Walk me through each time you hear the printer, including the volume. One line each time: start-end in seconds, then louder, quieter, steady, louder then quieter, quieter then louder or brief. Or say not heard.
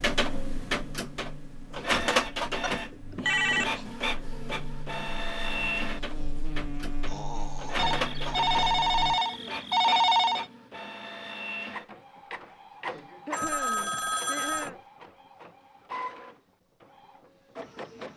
0.0-18.1 quieter.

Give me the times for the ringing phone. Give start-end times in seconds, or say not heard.
2.6-3.8, 7.8-10.4, 13.3-14.7.